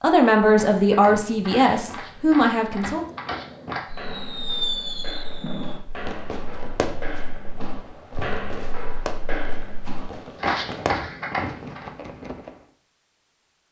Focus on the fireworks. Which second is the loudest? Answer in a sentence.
The loudest moment of the fireworks is at 5 seconds.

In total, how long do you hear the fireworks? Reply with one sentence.
The fireworks can be heard for 9 seconds in total.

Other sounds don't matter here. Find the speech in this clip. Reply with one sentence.
You can hear the speech from 0.0 to 3.0 s.